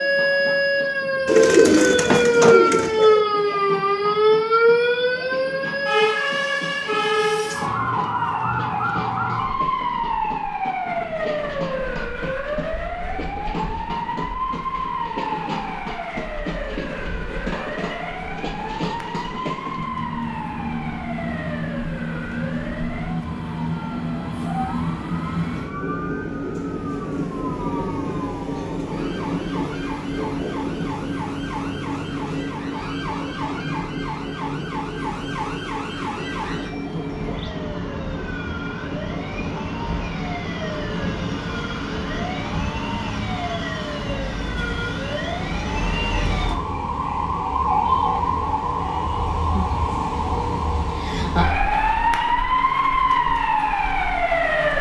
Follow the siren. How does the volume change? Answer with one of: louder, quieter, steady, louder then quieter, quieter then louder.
quieter then louder.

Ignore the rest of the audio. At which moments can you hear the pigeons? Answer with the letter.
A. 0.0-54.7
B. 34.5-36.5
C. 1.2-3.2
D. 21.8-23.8
C.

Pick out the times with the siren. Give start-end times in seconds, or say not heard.
0.0-54.7.